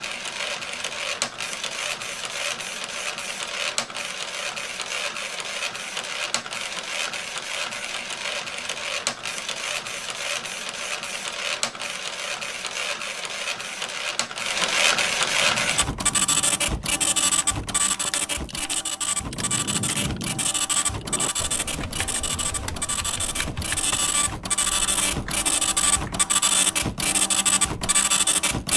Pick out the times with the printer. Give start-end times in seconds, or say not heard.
0.0-28.7.